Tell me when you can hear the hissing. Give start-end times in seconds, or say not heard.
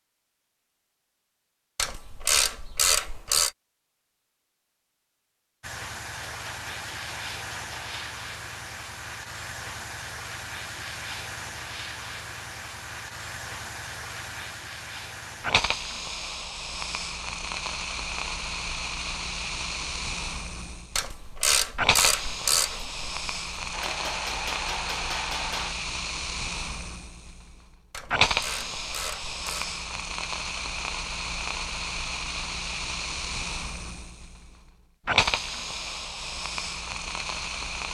5.6-37.8.